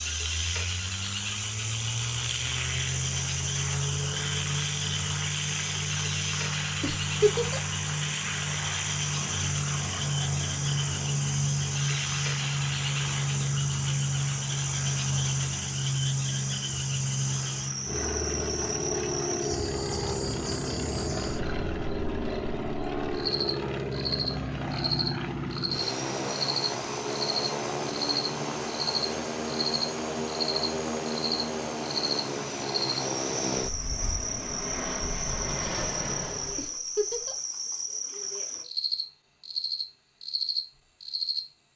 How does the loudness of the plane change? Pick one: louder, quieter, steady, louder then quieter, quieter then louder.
steady.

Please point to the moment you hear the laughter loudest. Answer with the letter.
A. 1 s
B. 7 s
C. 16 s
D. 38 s
B.